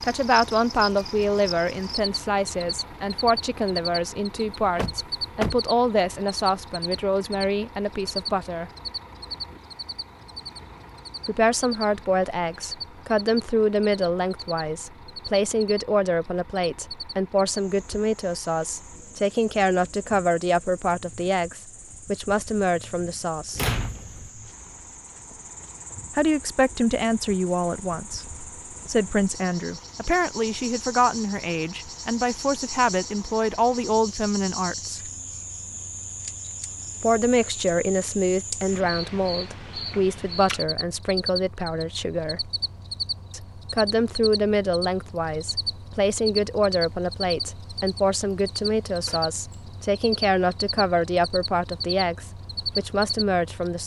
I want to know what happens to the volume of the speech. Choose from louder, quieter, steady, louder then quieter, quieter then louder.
steady.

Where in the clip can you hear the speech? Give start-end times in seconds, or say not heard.
0.0-8.7, 11.2-23.6, 26.1-35.1, 37.0-42.5, 43.3-53.8.